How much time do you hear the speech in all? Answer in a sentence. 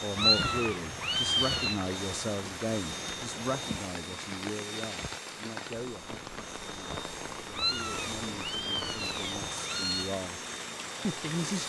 You can hear the speech for 11 seconds altogether.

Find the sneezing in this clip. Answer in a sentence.
The sneezing can't be heard in this clip.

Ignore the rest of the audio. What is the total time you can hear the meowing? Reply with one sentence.
You can hear the meowing for 4 seconds altogether.